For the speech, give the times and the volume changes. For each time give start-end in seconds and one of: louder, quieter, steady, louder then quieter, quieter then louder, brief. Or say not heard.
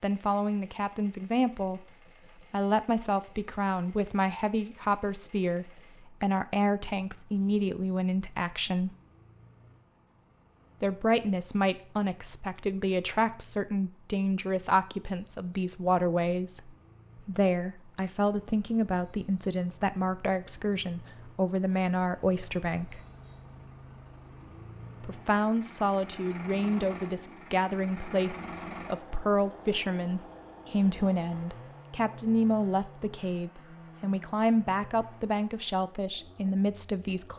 0.0-1.9 brief
2.5-8.9 steady
10.8-23.0 steady
25.0-37.3 steady.